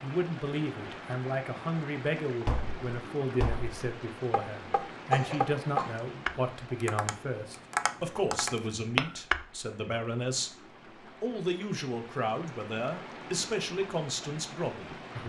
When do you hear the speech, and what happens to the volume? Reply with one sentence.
The speech can be heard from 0.0 to 10.5 s, at a steady volume; and from 11.2 to 15.2 s, at a steady volume.